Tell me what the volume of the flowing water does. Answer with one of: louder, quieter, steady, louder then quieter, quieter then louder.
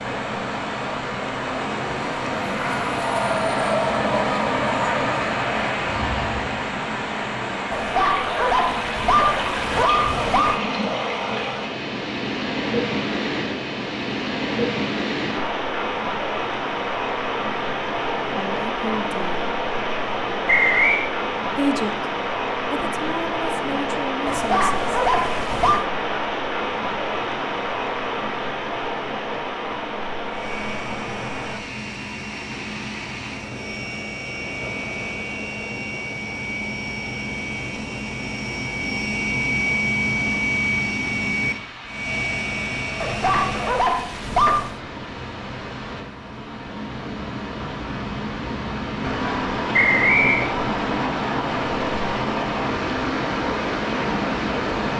quieter then louder.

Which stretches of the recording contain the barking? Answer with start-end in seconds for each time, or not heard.
7.7-10.6, 24.2-25.9, 43.0-44.8.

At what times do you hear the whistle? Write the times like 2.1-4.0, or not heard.
20.4-21.1, 49.7-50.5.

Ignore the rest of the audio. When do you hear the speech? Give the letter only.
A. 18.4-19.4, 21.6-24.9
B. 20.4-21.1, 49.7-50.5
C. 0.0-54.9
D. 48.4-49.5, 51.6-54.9
A.